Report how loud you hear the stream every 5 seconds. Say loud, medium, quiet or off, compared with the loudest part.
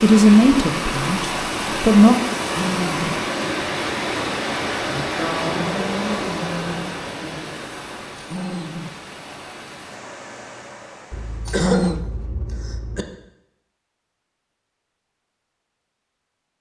loud, loud, quiet, off.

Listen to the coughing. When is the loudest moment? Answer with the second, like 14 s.
12 s.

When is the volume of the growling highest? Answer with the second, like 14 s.
12 s.